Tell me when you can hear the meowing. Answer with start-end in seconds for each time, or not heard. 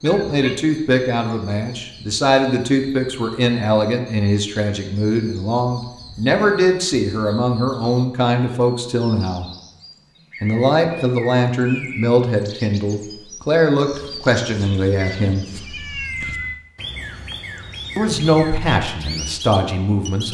0.1-0.7, 15.0-16.6.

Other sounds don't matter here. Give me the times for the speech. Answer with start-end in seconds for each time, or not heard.
0.0-9.4, 10.4-15.4, 17.9-20.2.